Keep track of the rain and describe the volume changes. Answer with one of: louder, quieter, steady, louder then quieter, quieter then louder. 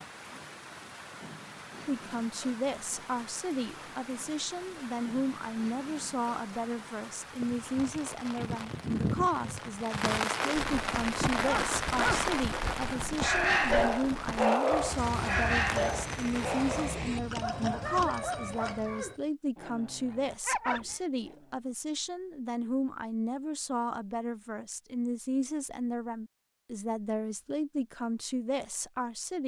louder then quieter.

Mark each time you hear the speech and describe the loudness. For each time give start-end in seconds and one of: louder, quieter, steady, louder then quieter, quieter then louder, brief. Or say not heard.
1.9-29.4 steady.